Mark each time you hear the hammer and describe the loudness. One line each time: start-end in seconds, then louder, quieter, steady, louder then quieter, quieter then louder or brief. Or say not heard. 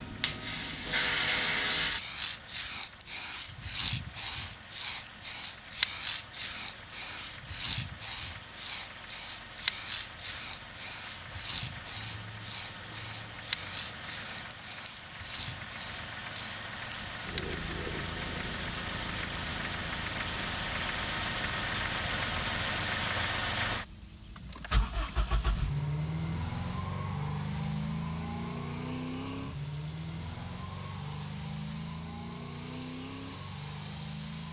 not heard.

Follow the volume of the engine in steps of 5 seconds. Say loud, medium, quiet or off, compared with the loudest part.
quiet, quiet, medium, medium, loud, loud, medium.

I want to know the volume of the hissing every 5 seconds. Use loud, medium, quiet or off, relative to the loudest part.
loud, loud, medium, medium, quiet, quiet, quiet.